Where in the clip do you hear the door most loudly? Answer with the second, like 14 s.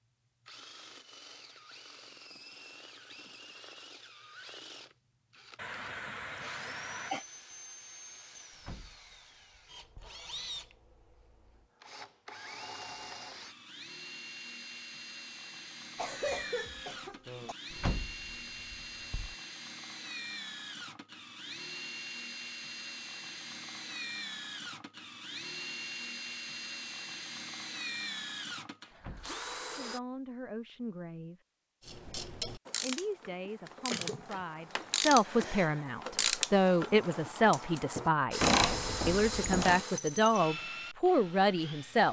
18 s.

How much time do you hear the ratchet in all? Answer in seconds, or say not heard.
8 s.